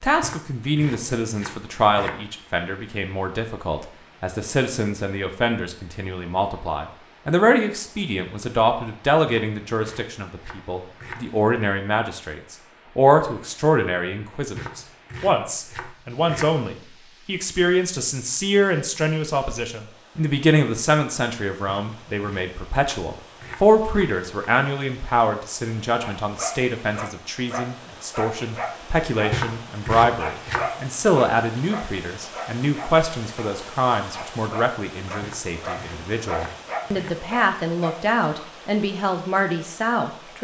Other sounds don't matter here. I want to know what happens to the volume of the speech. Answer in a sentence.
The volume of the speech stays about the same.